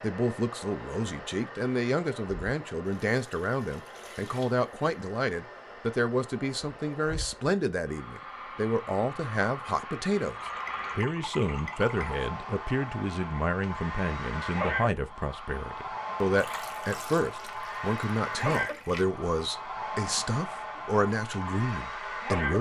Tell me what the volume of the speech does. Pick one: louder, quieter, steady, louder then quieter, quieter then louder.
steady.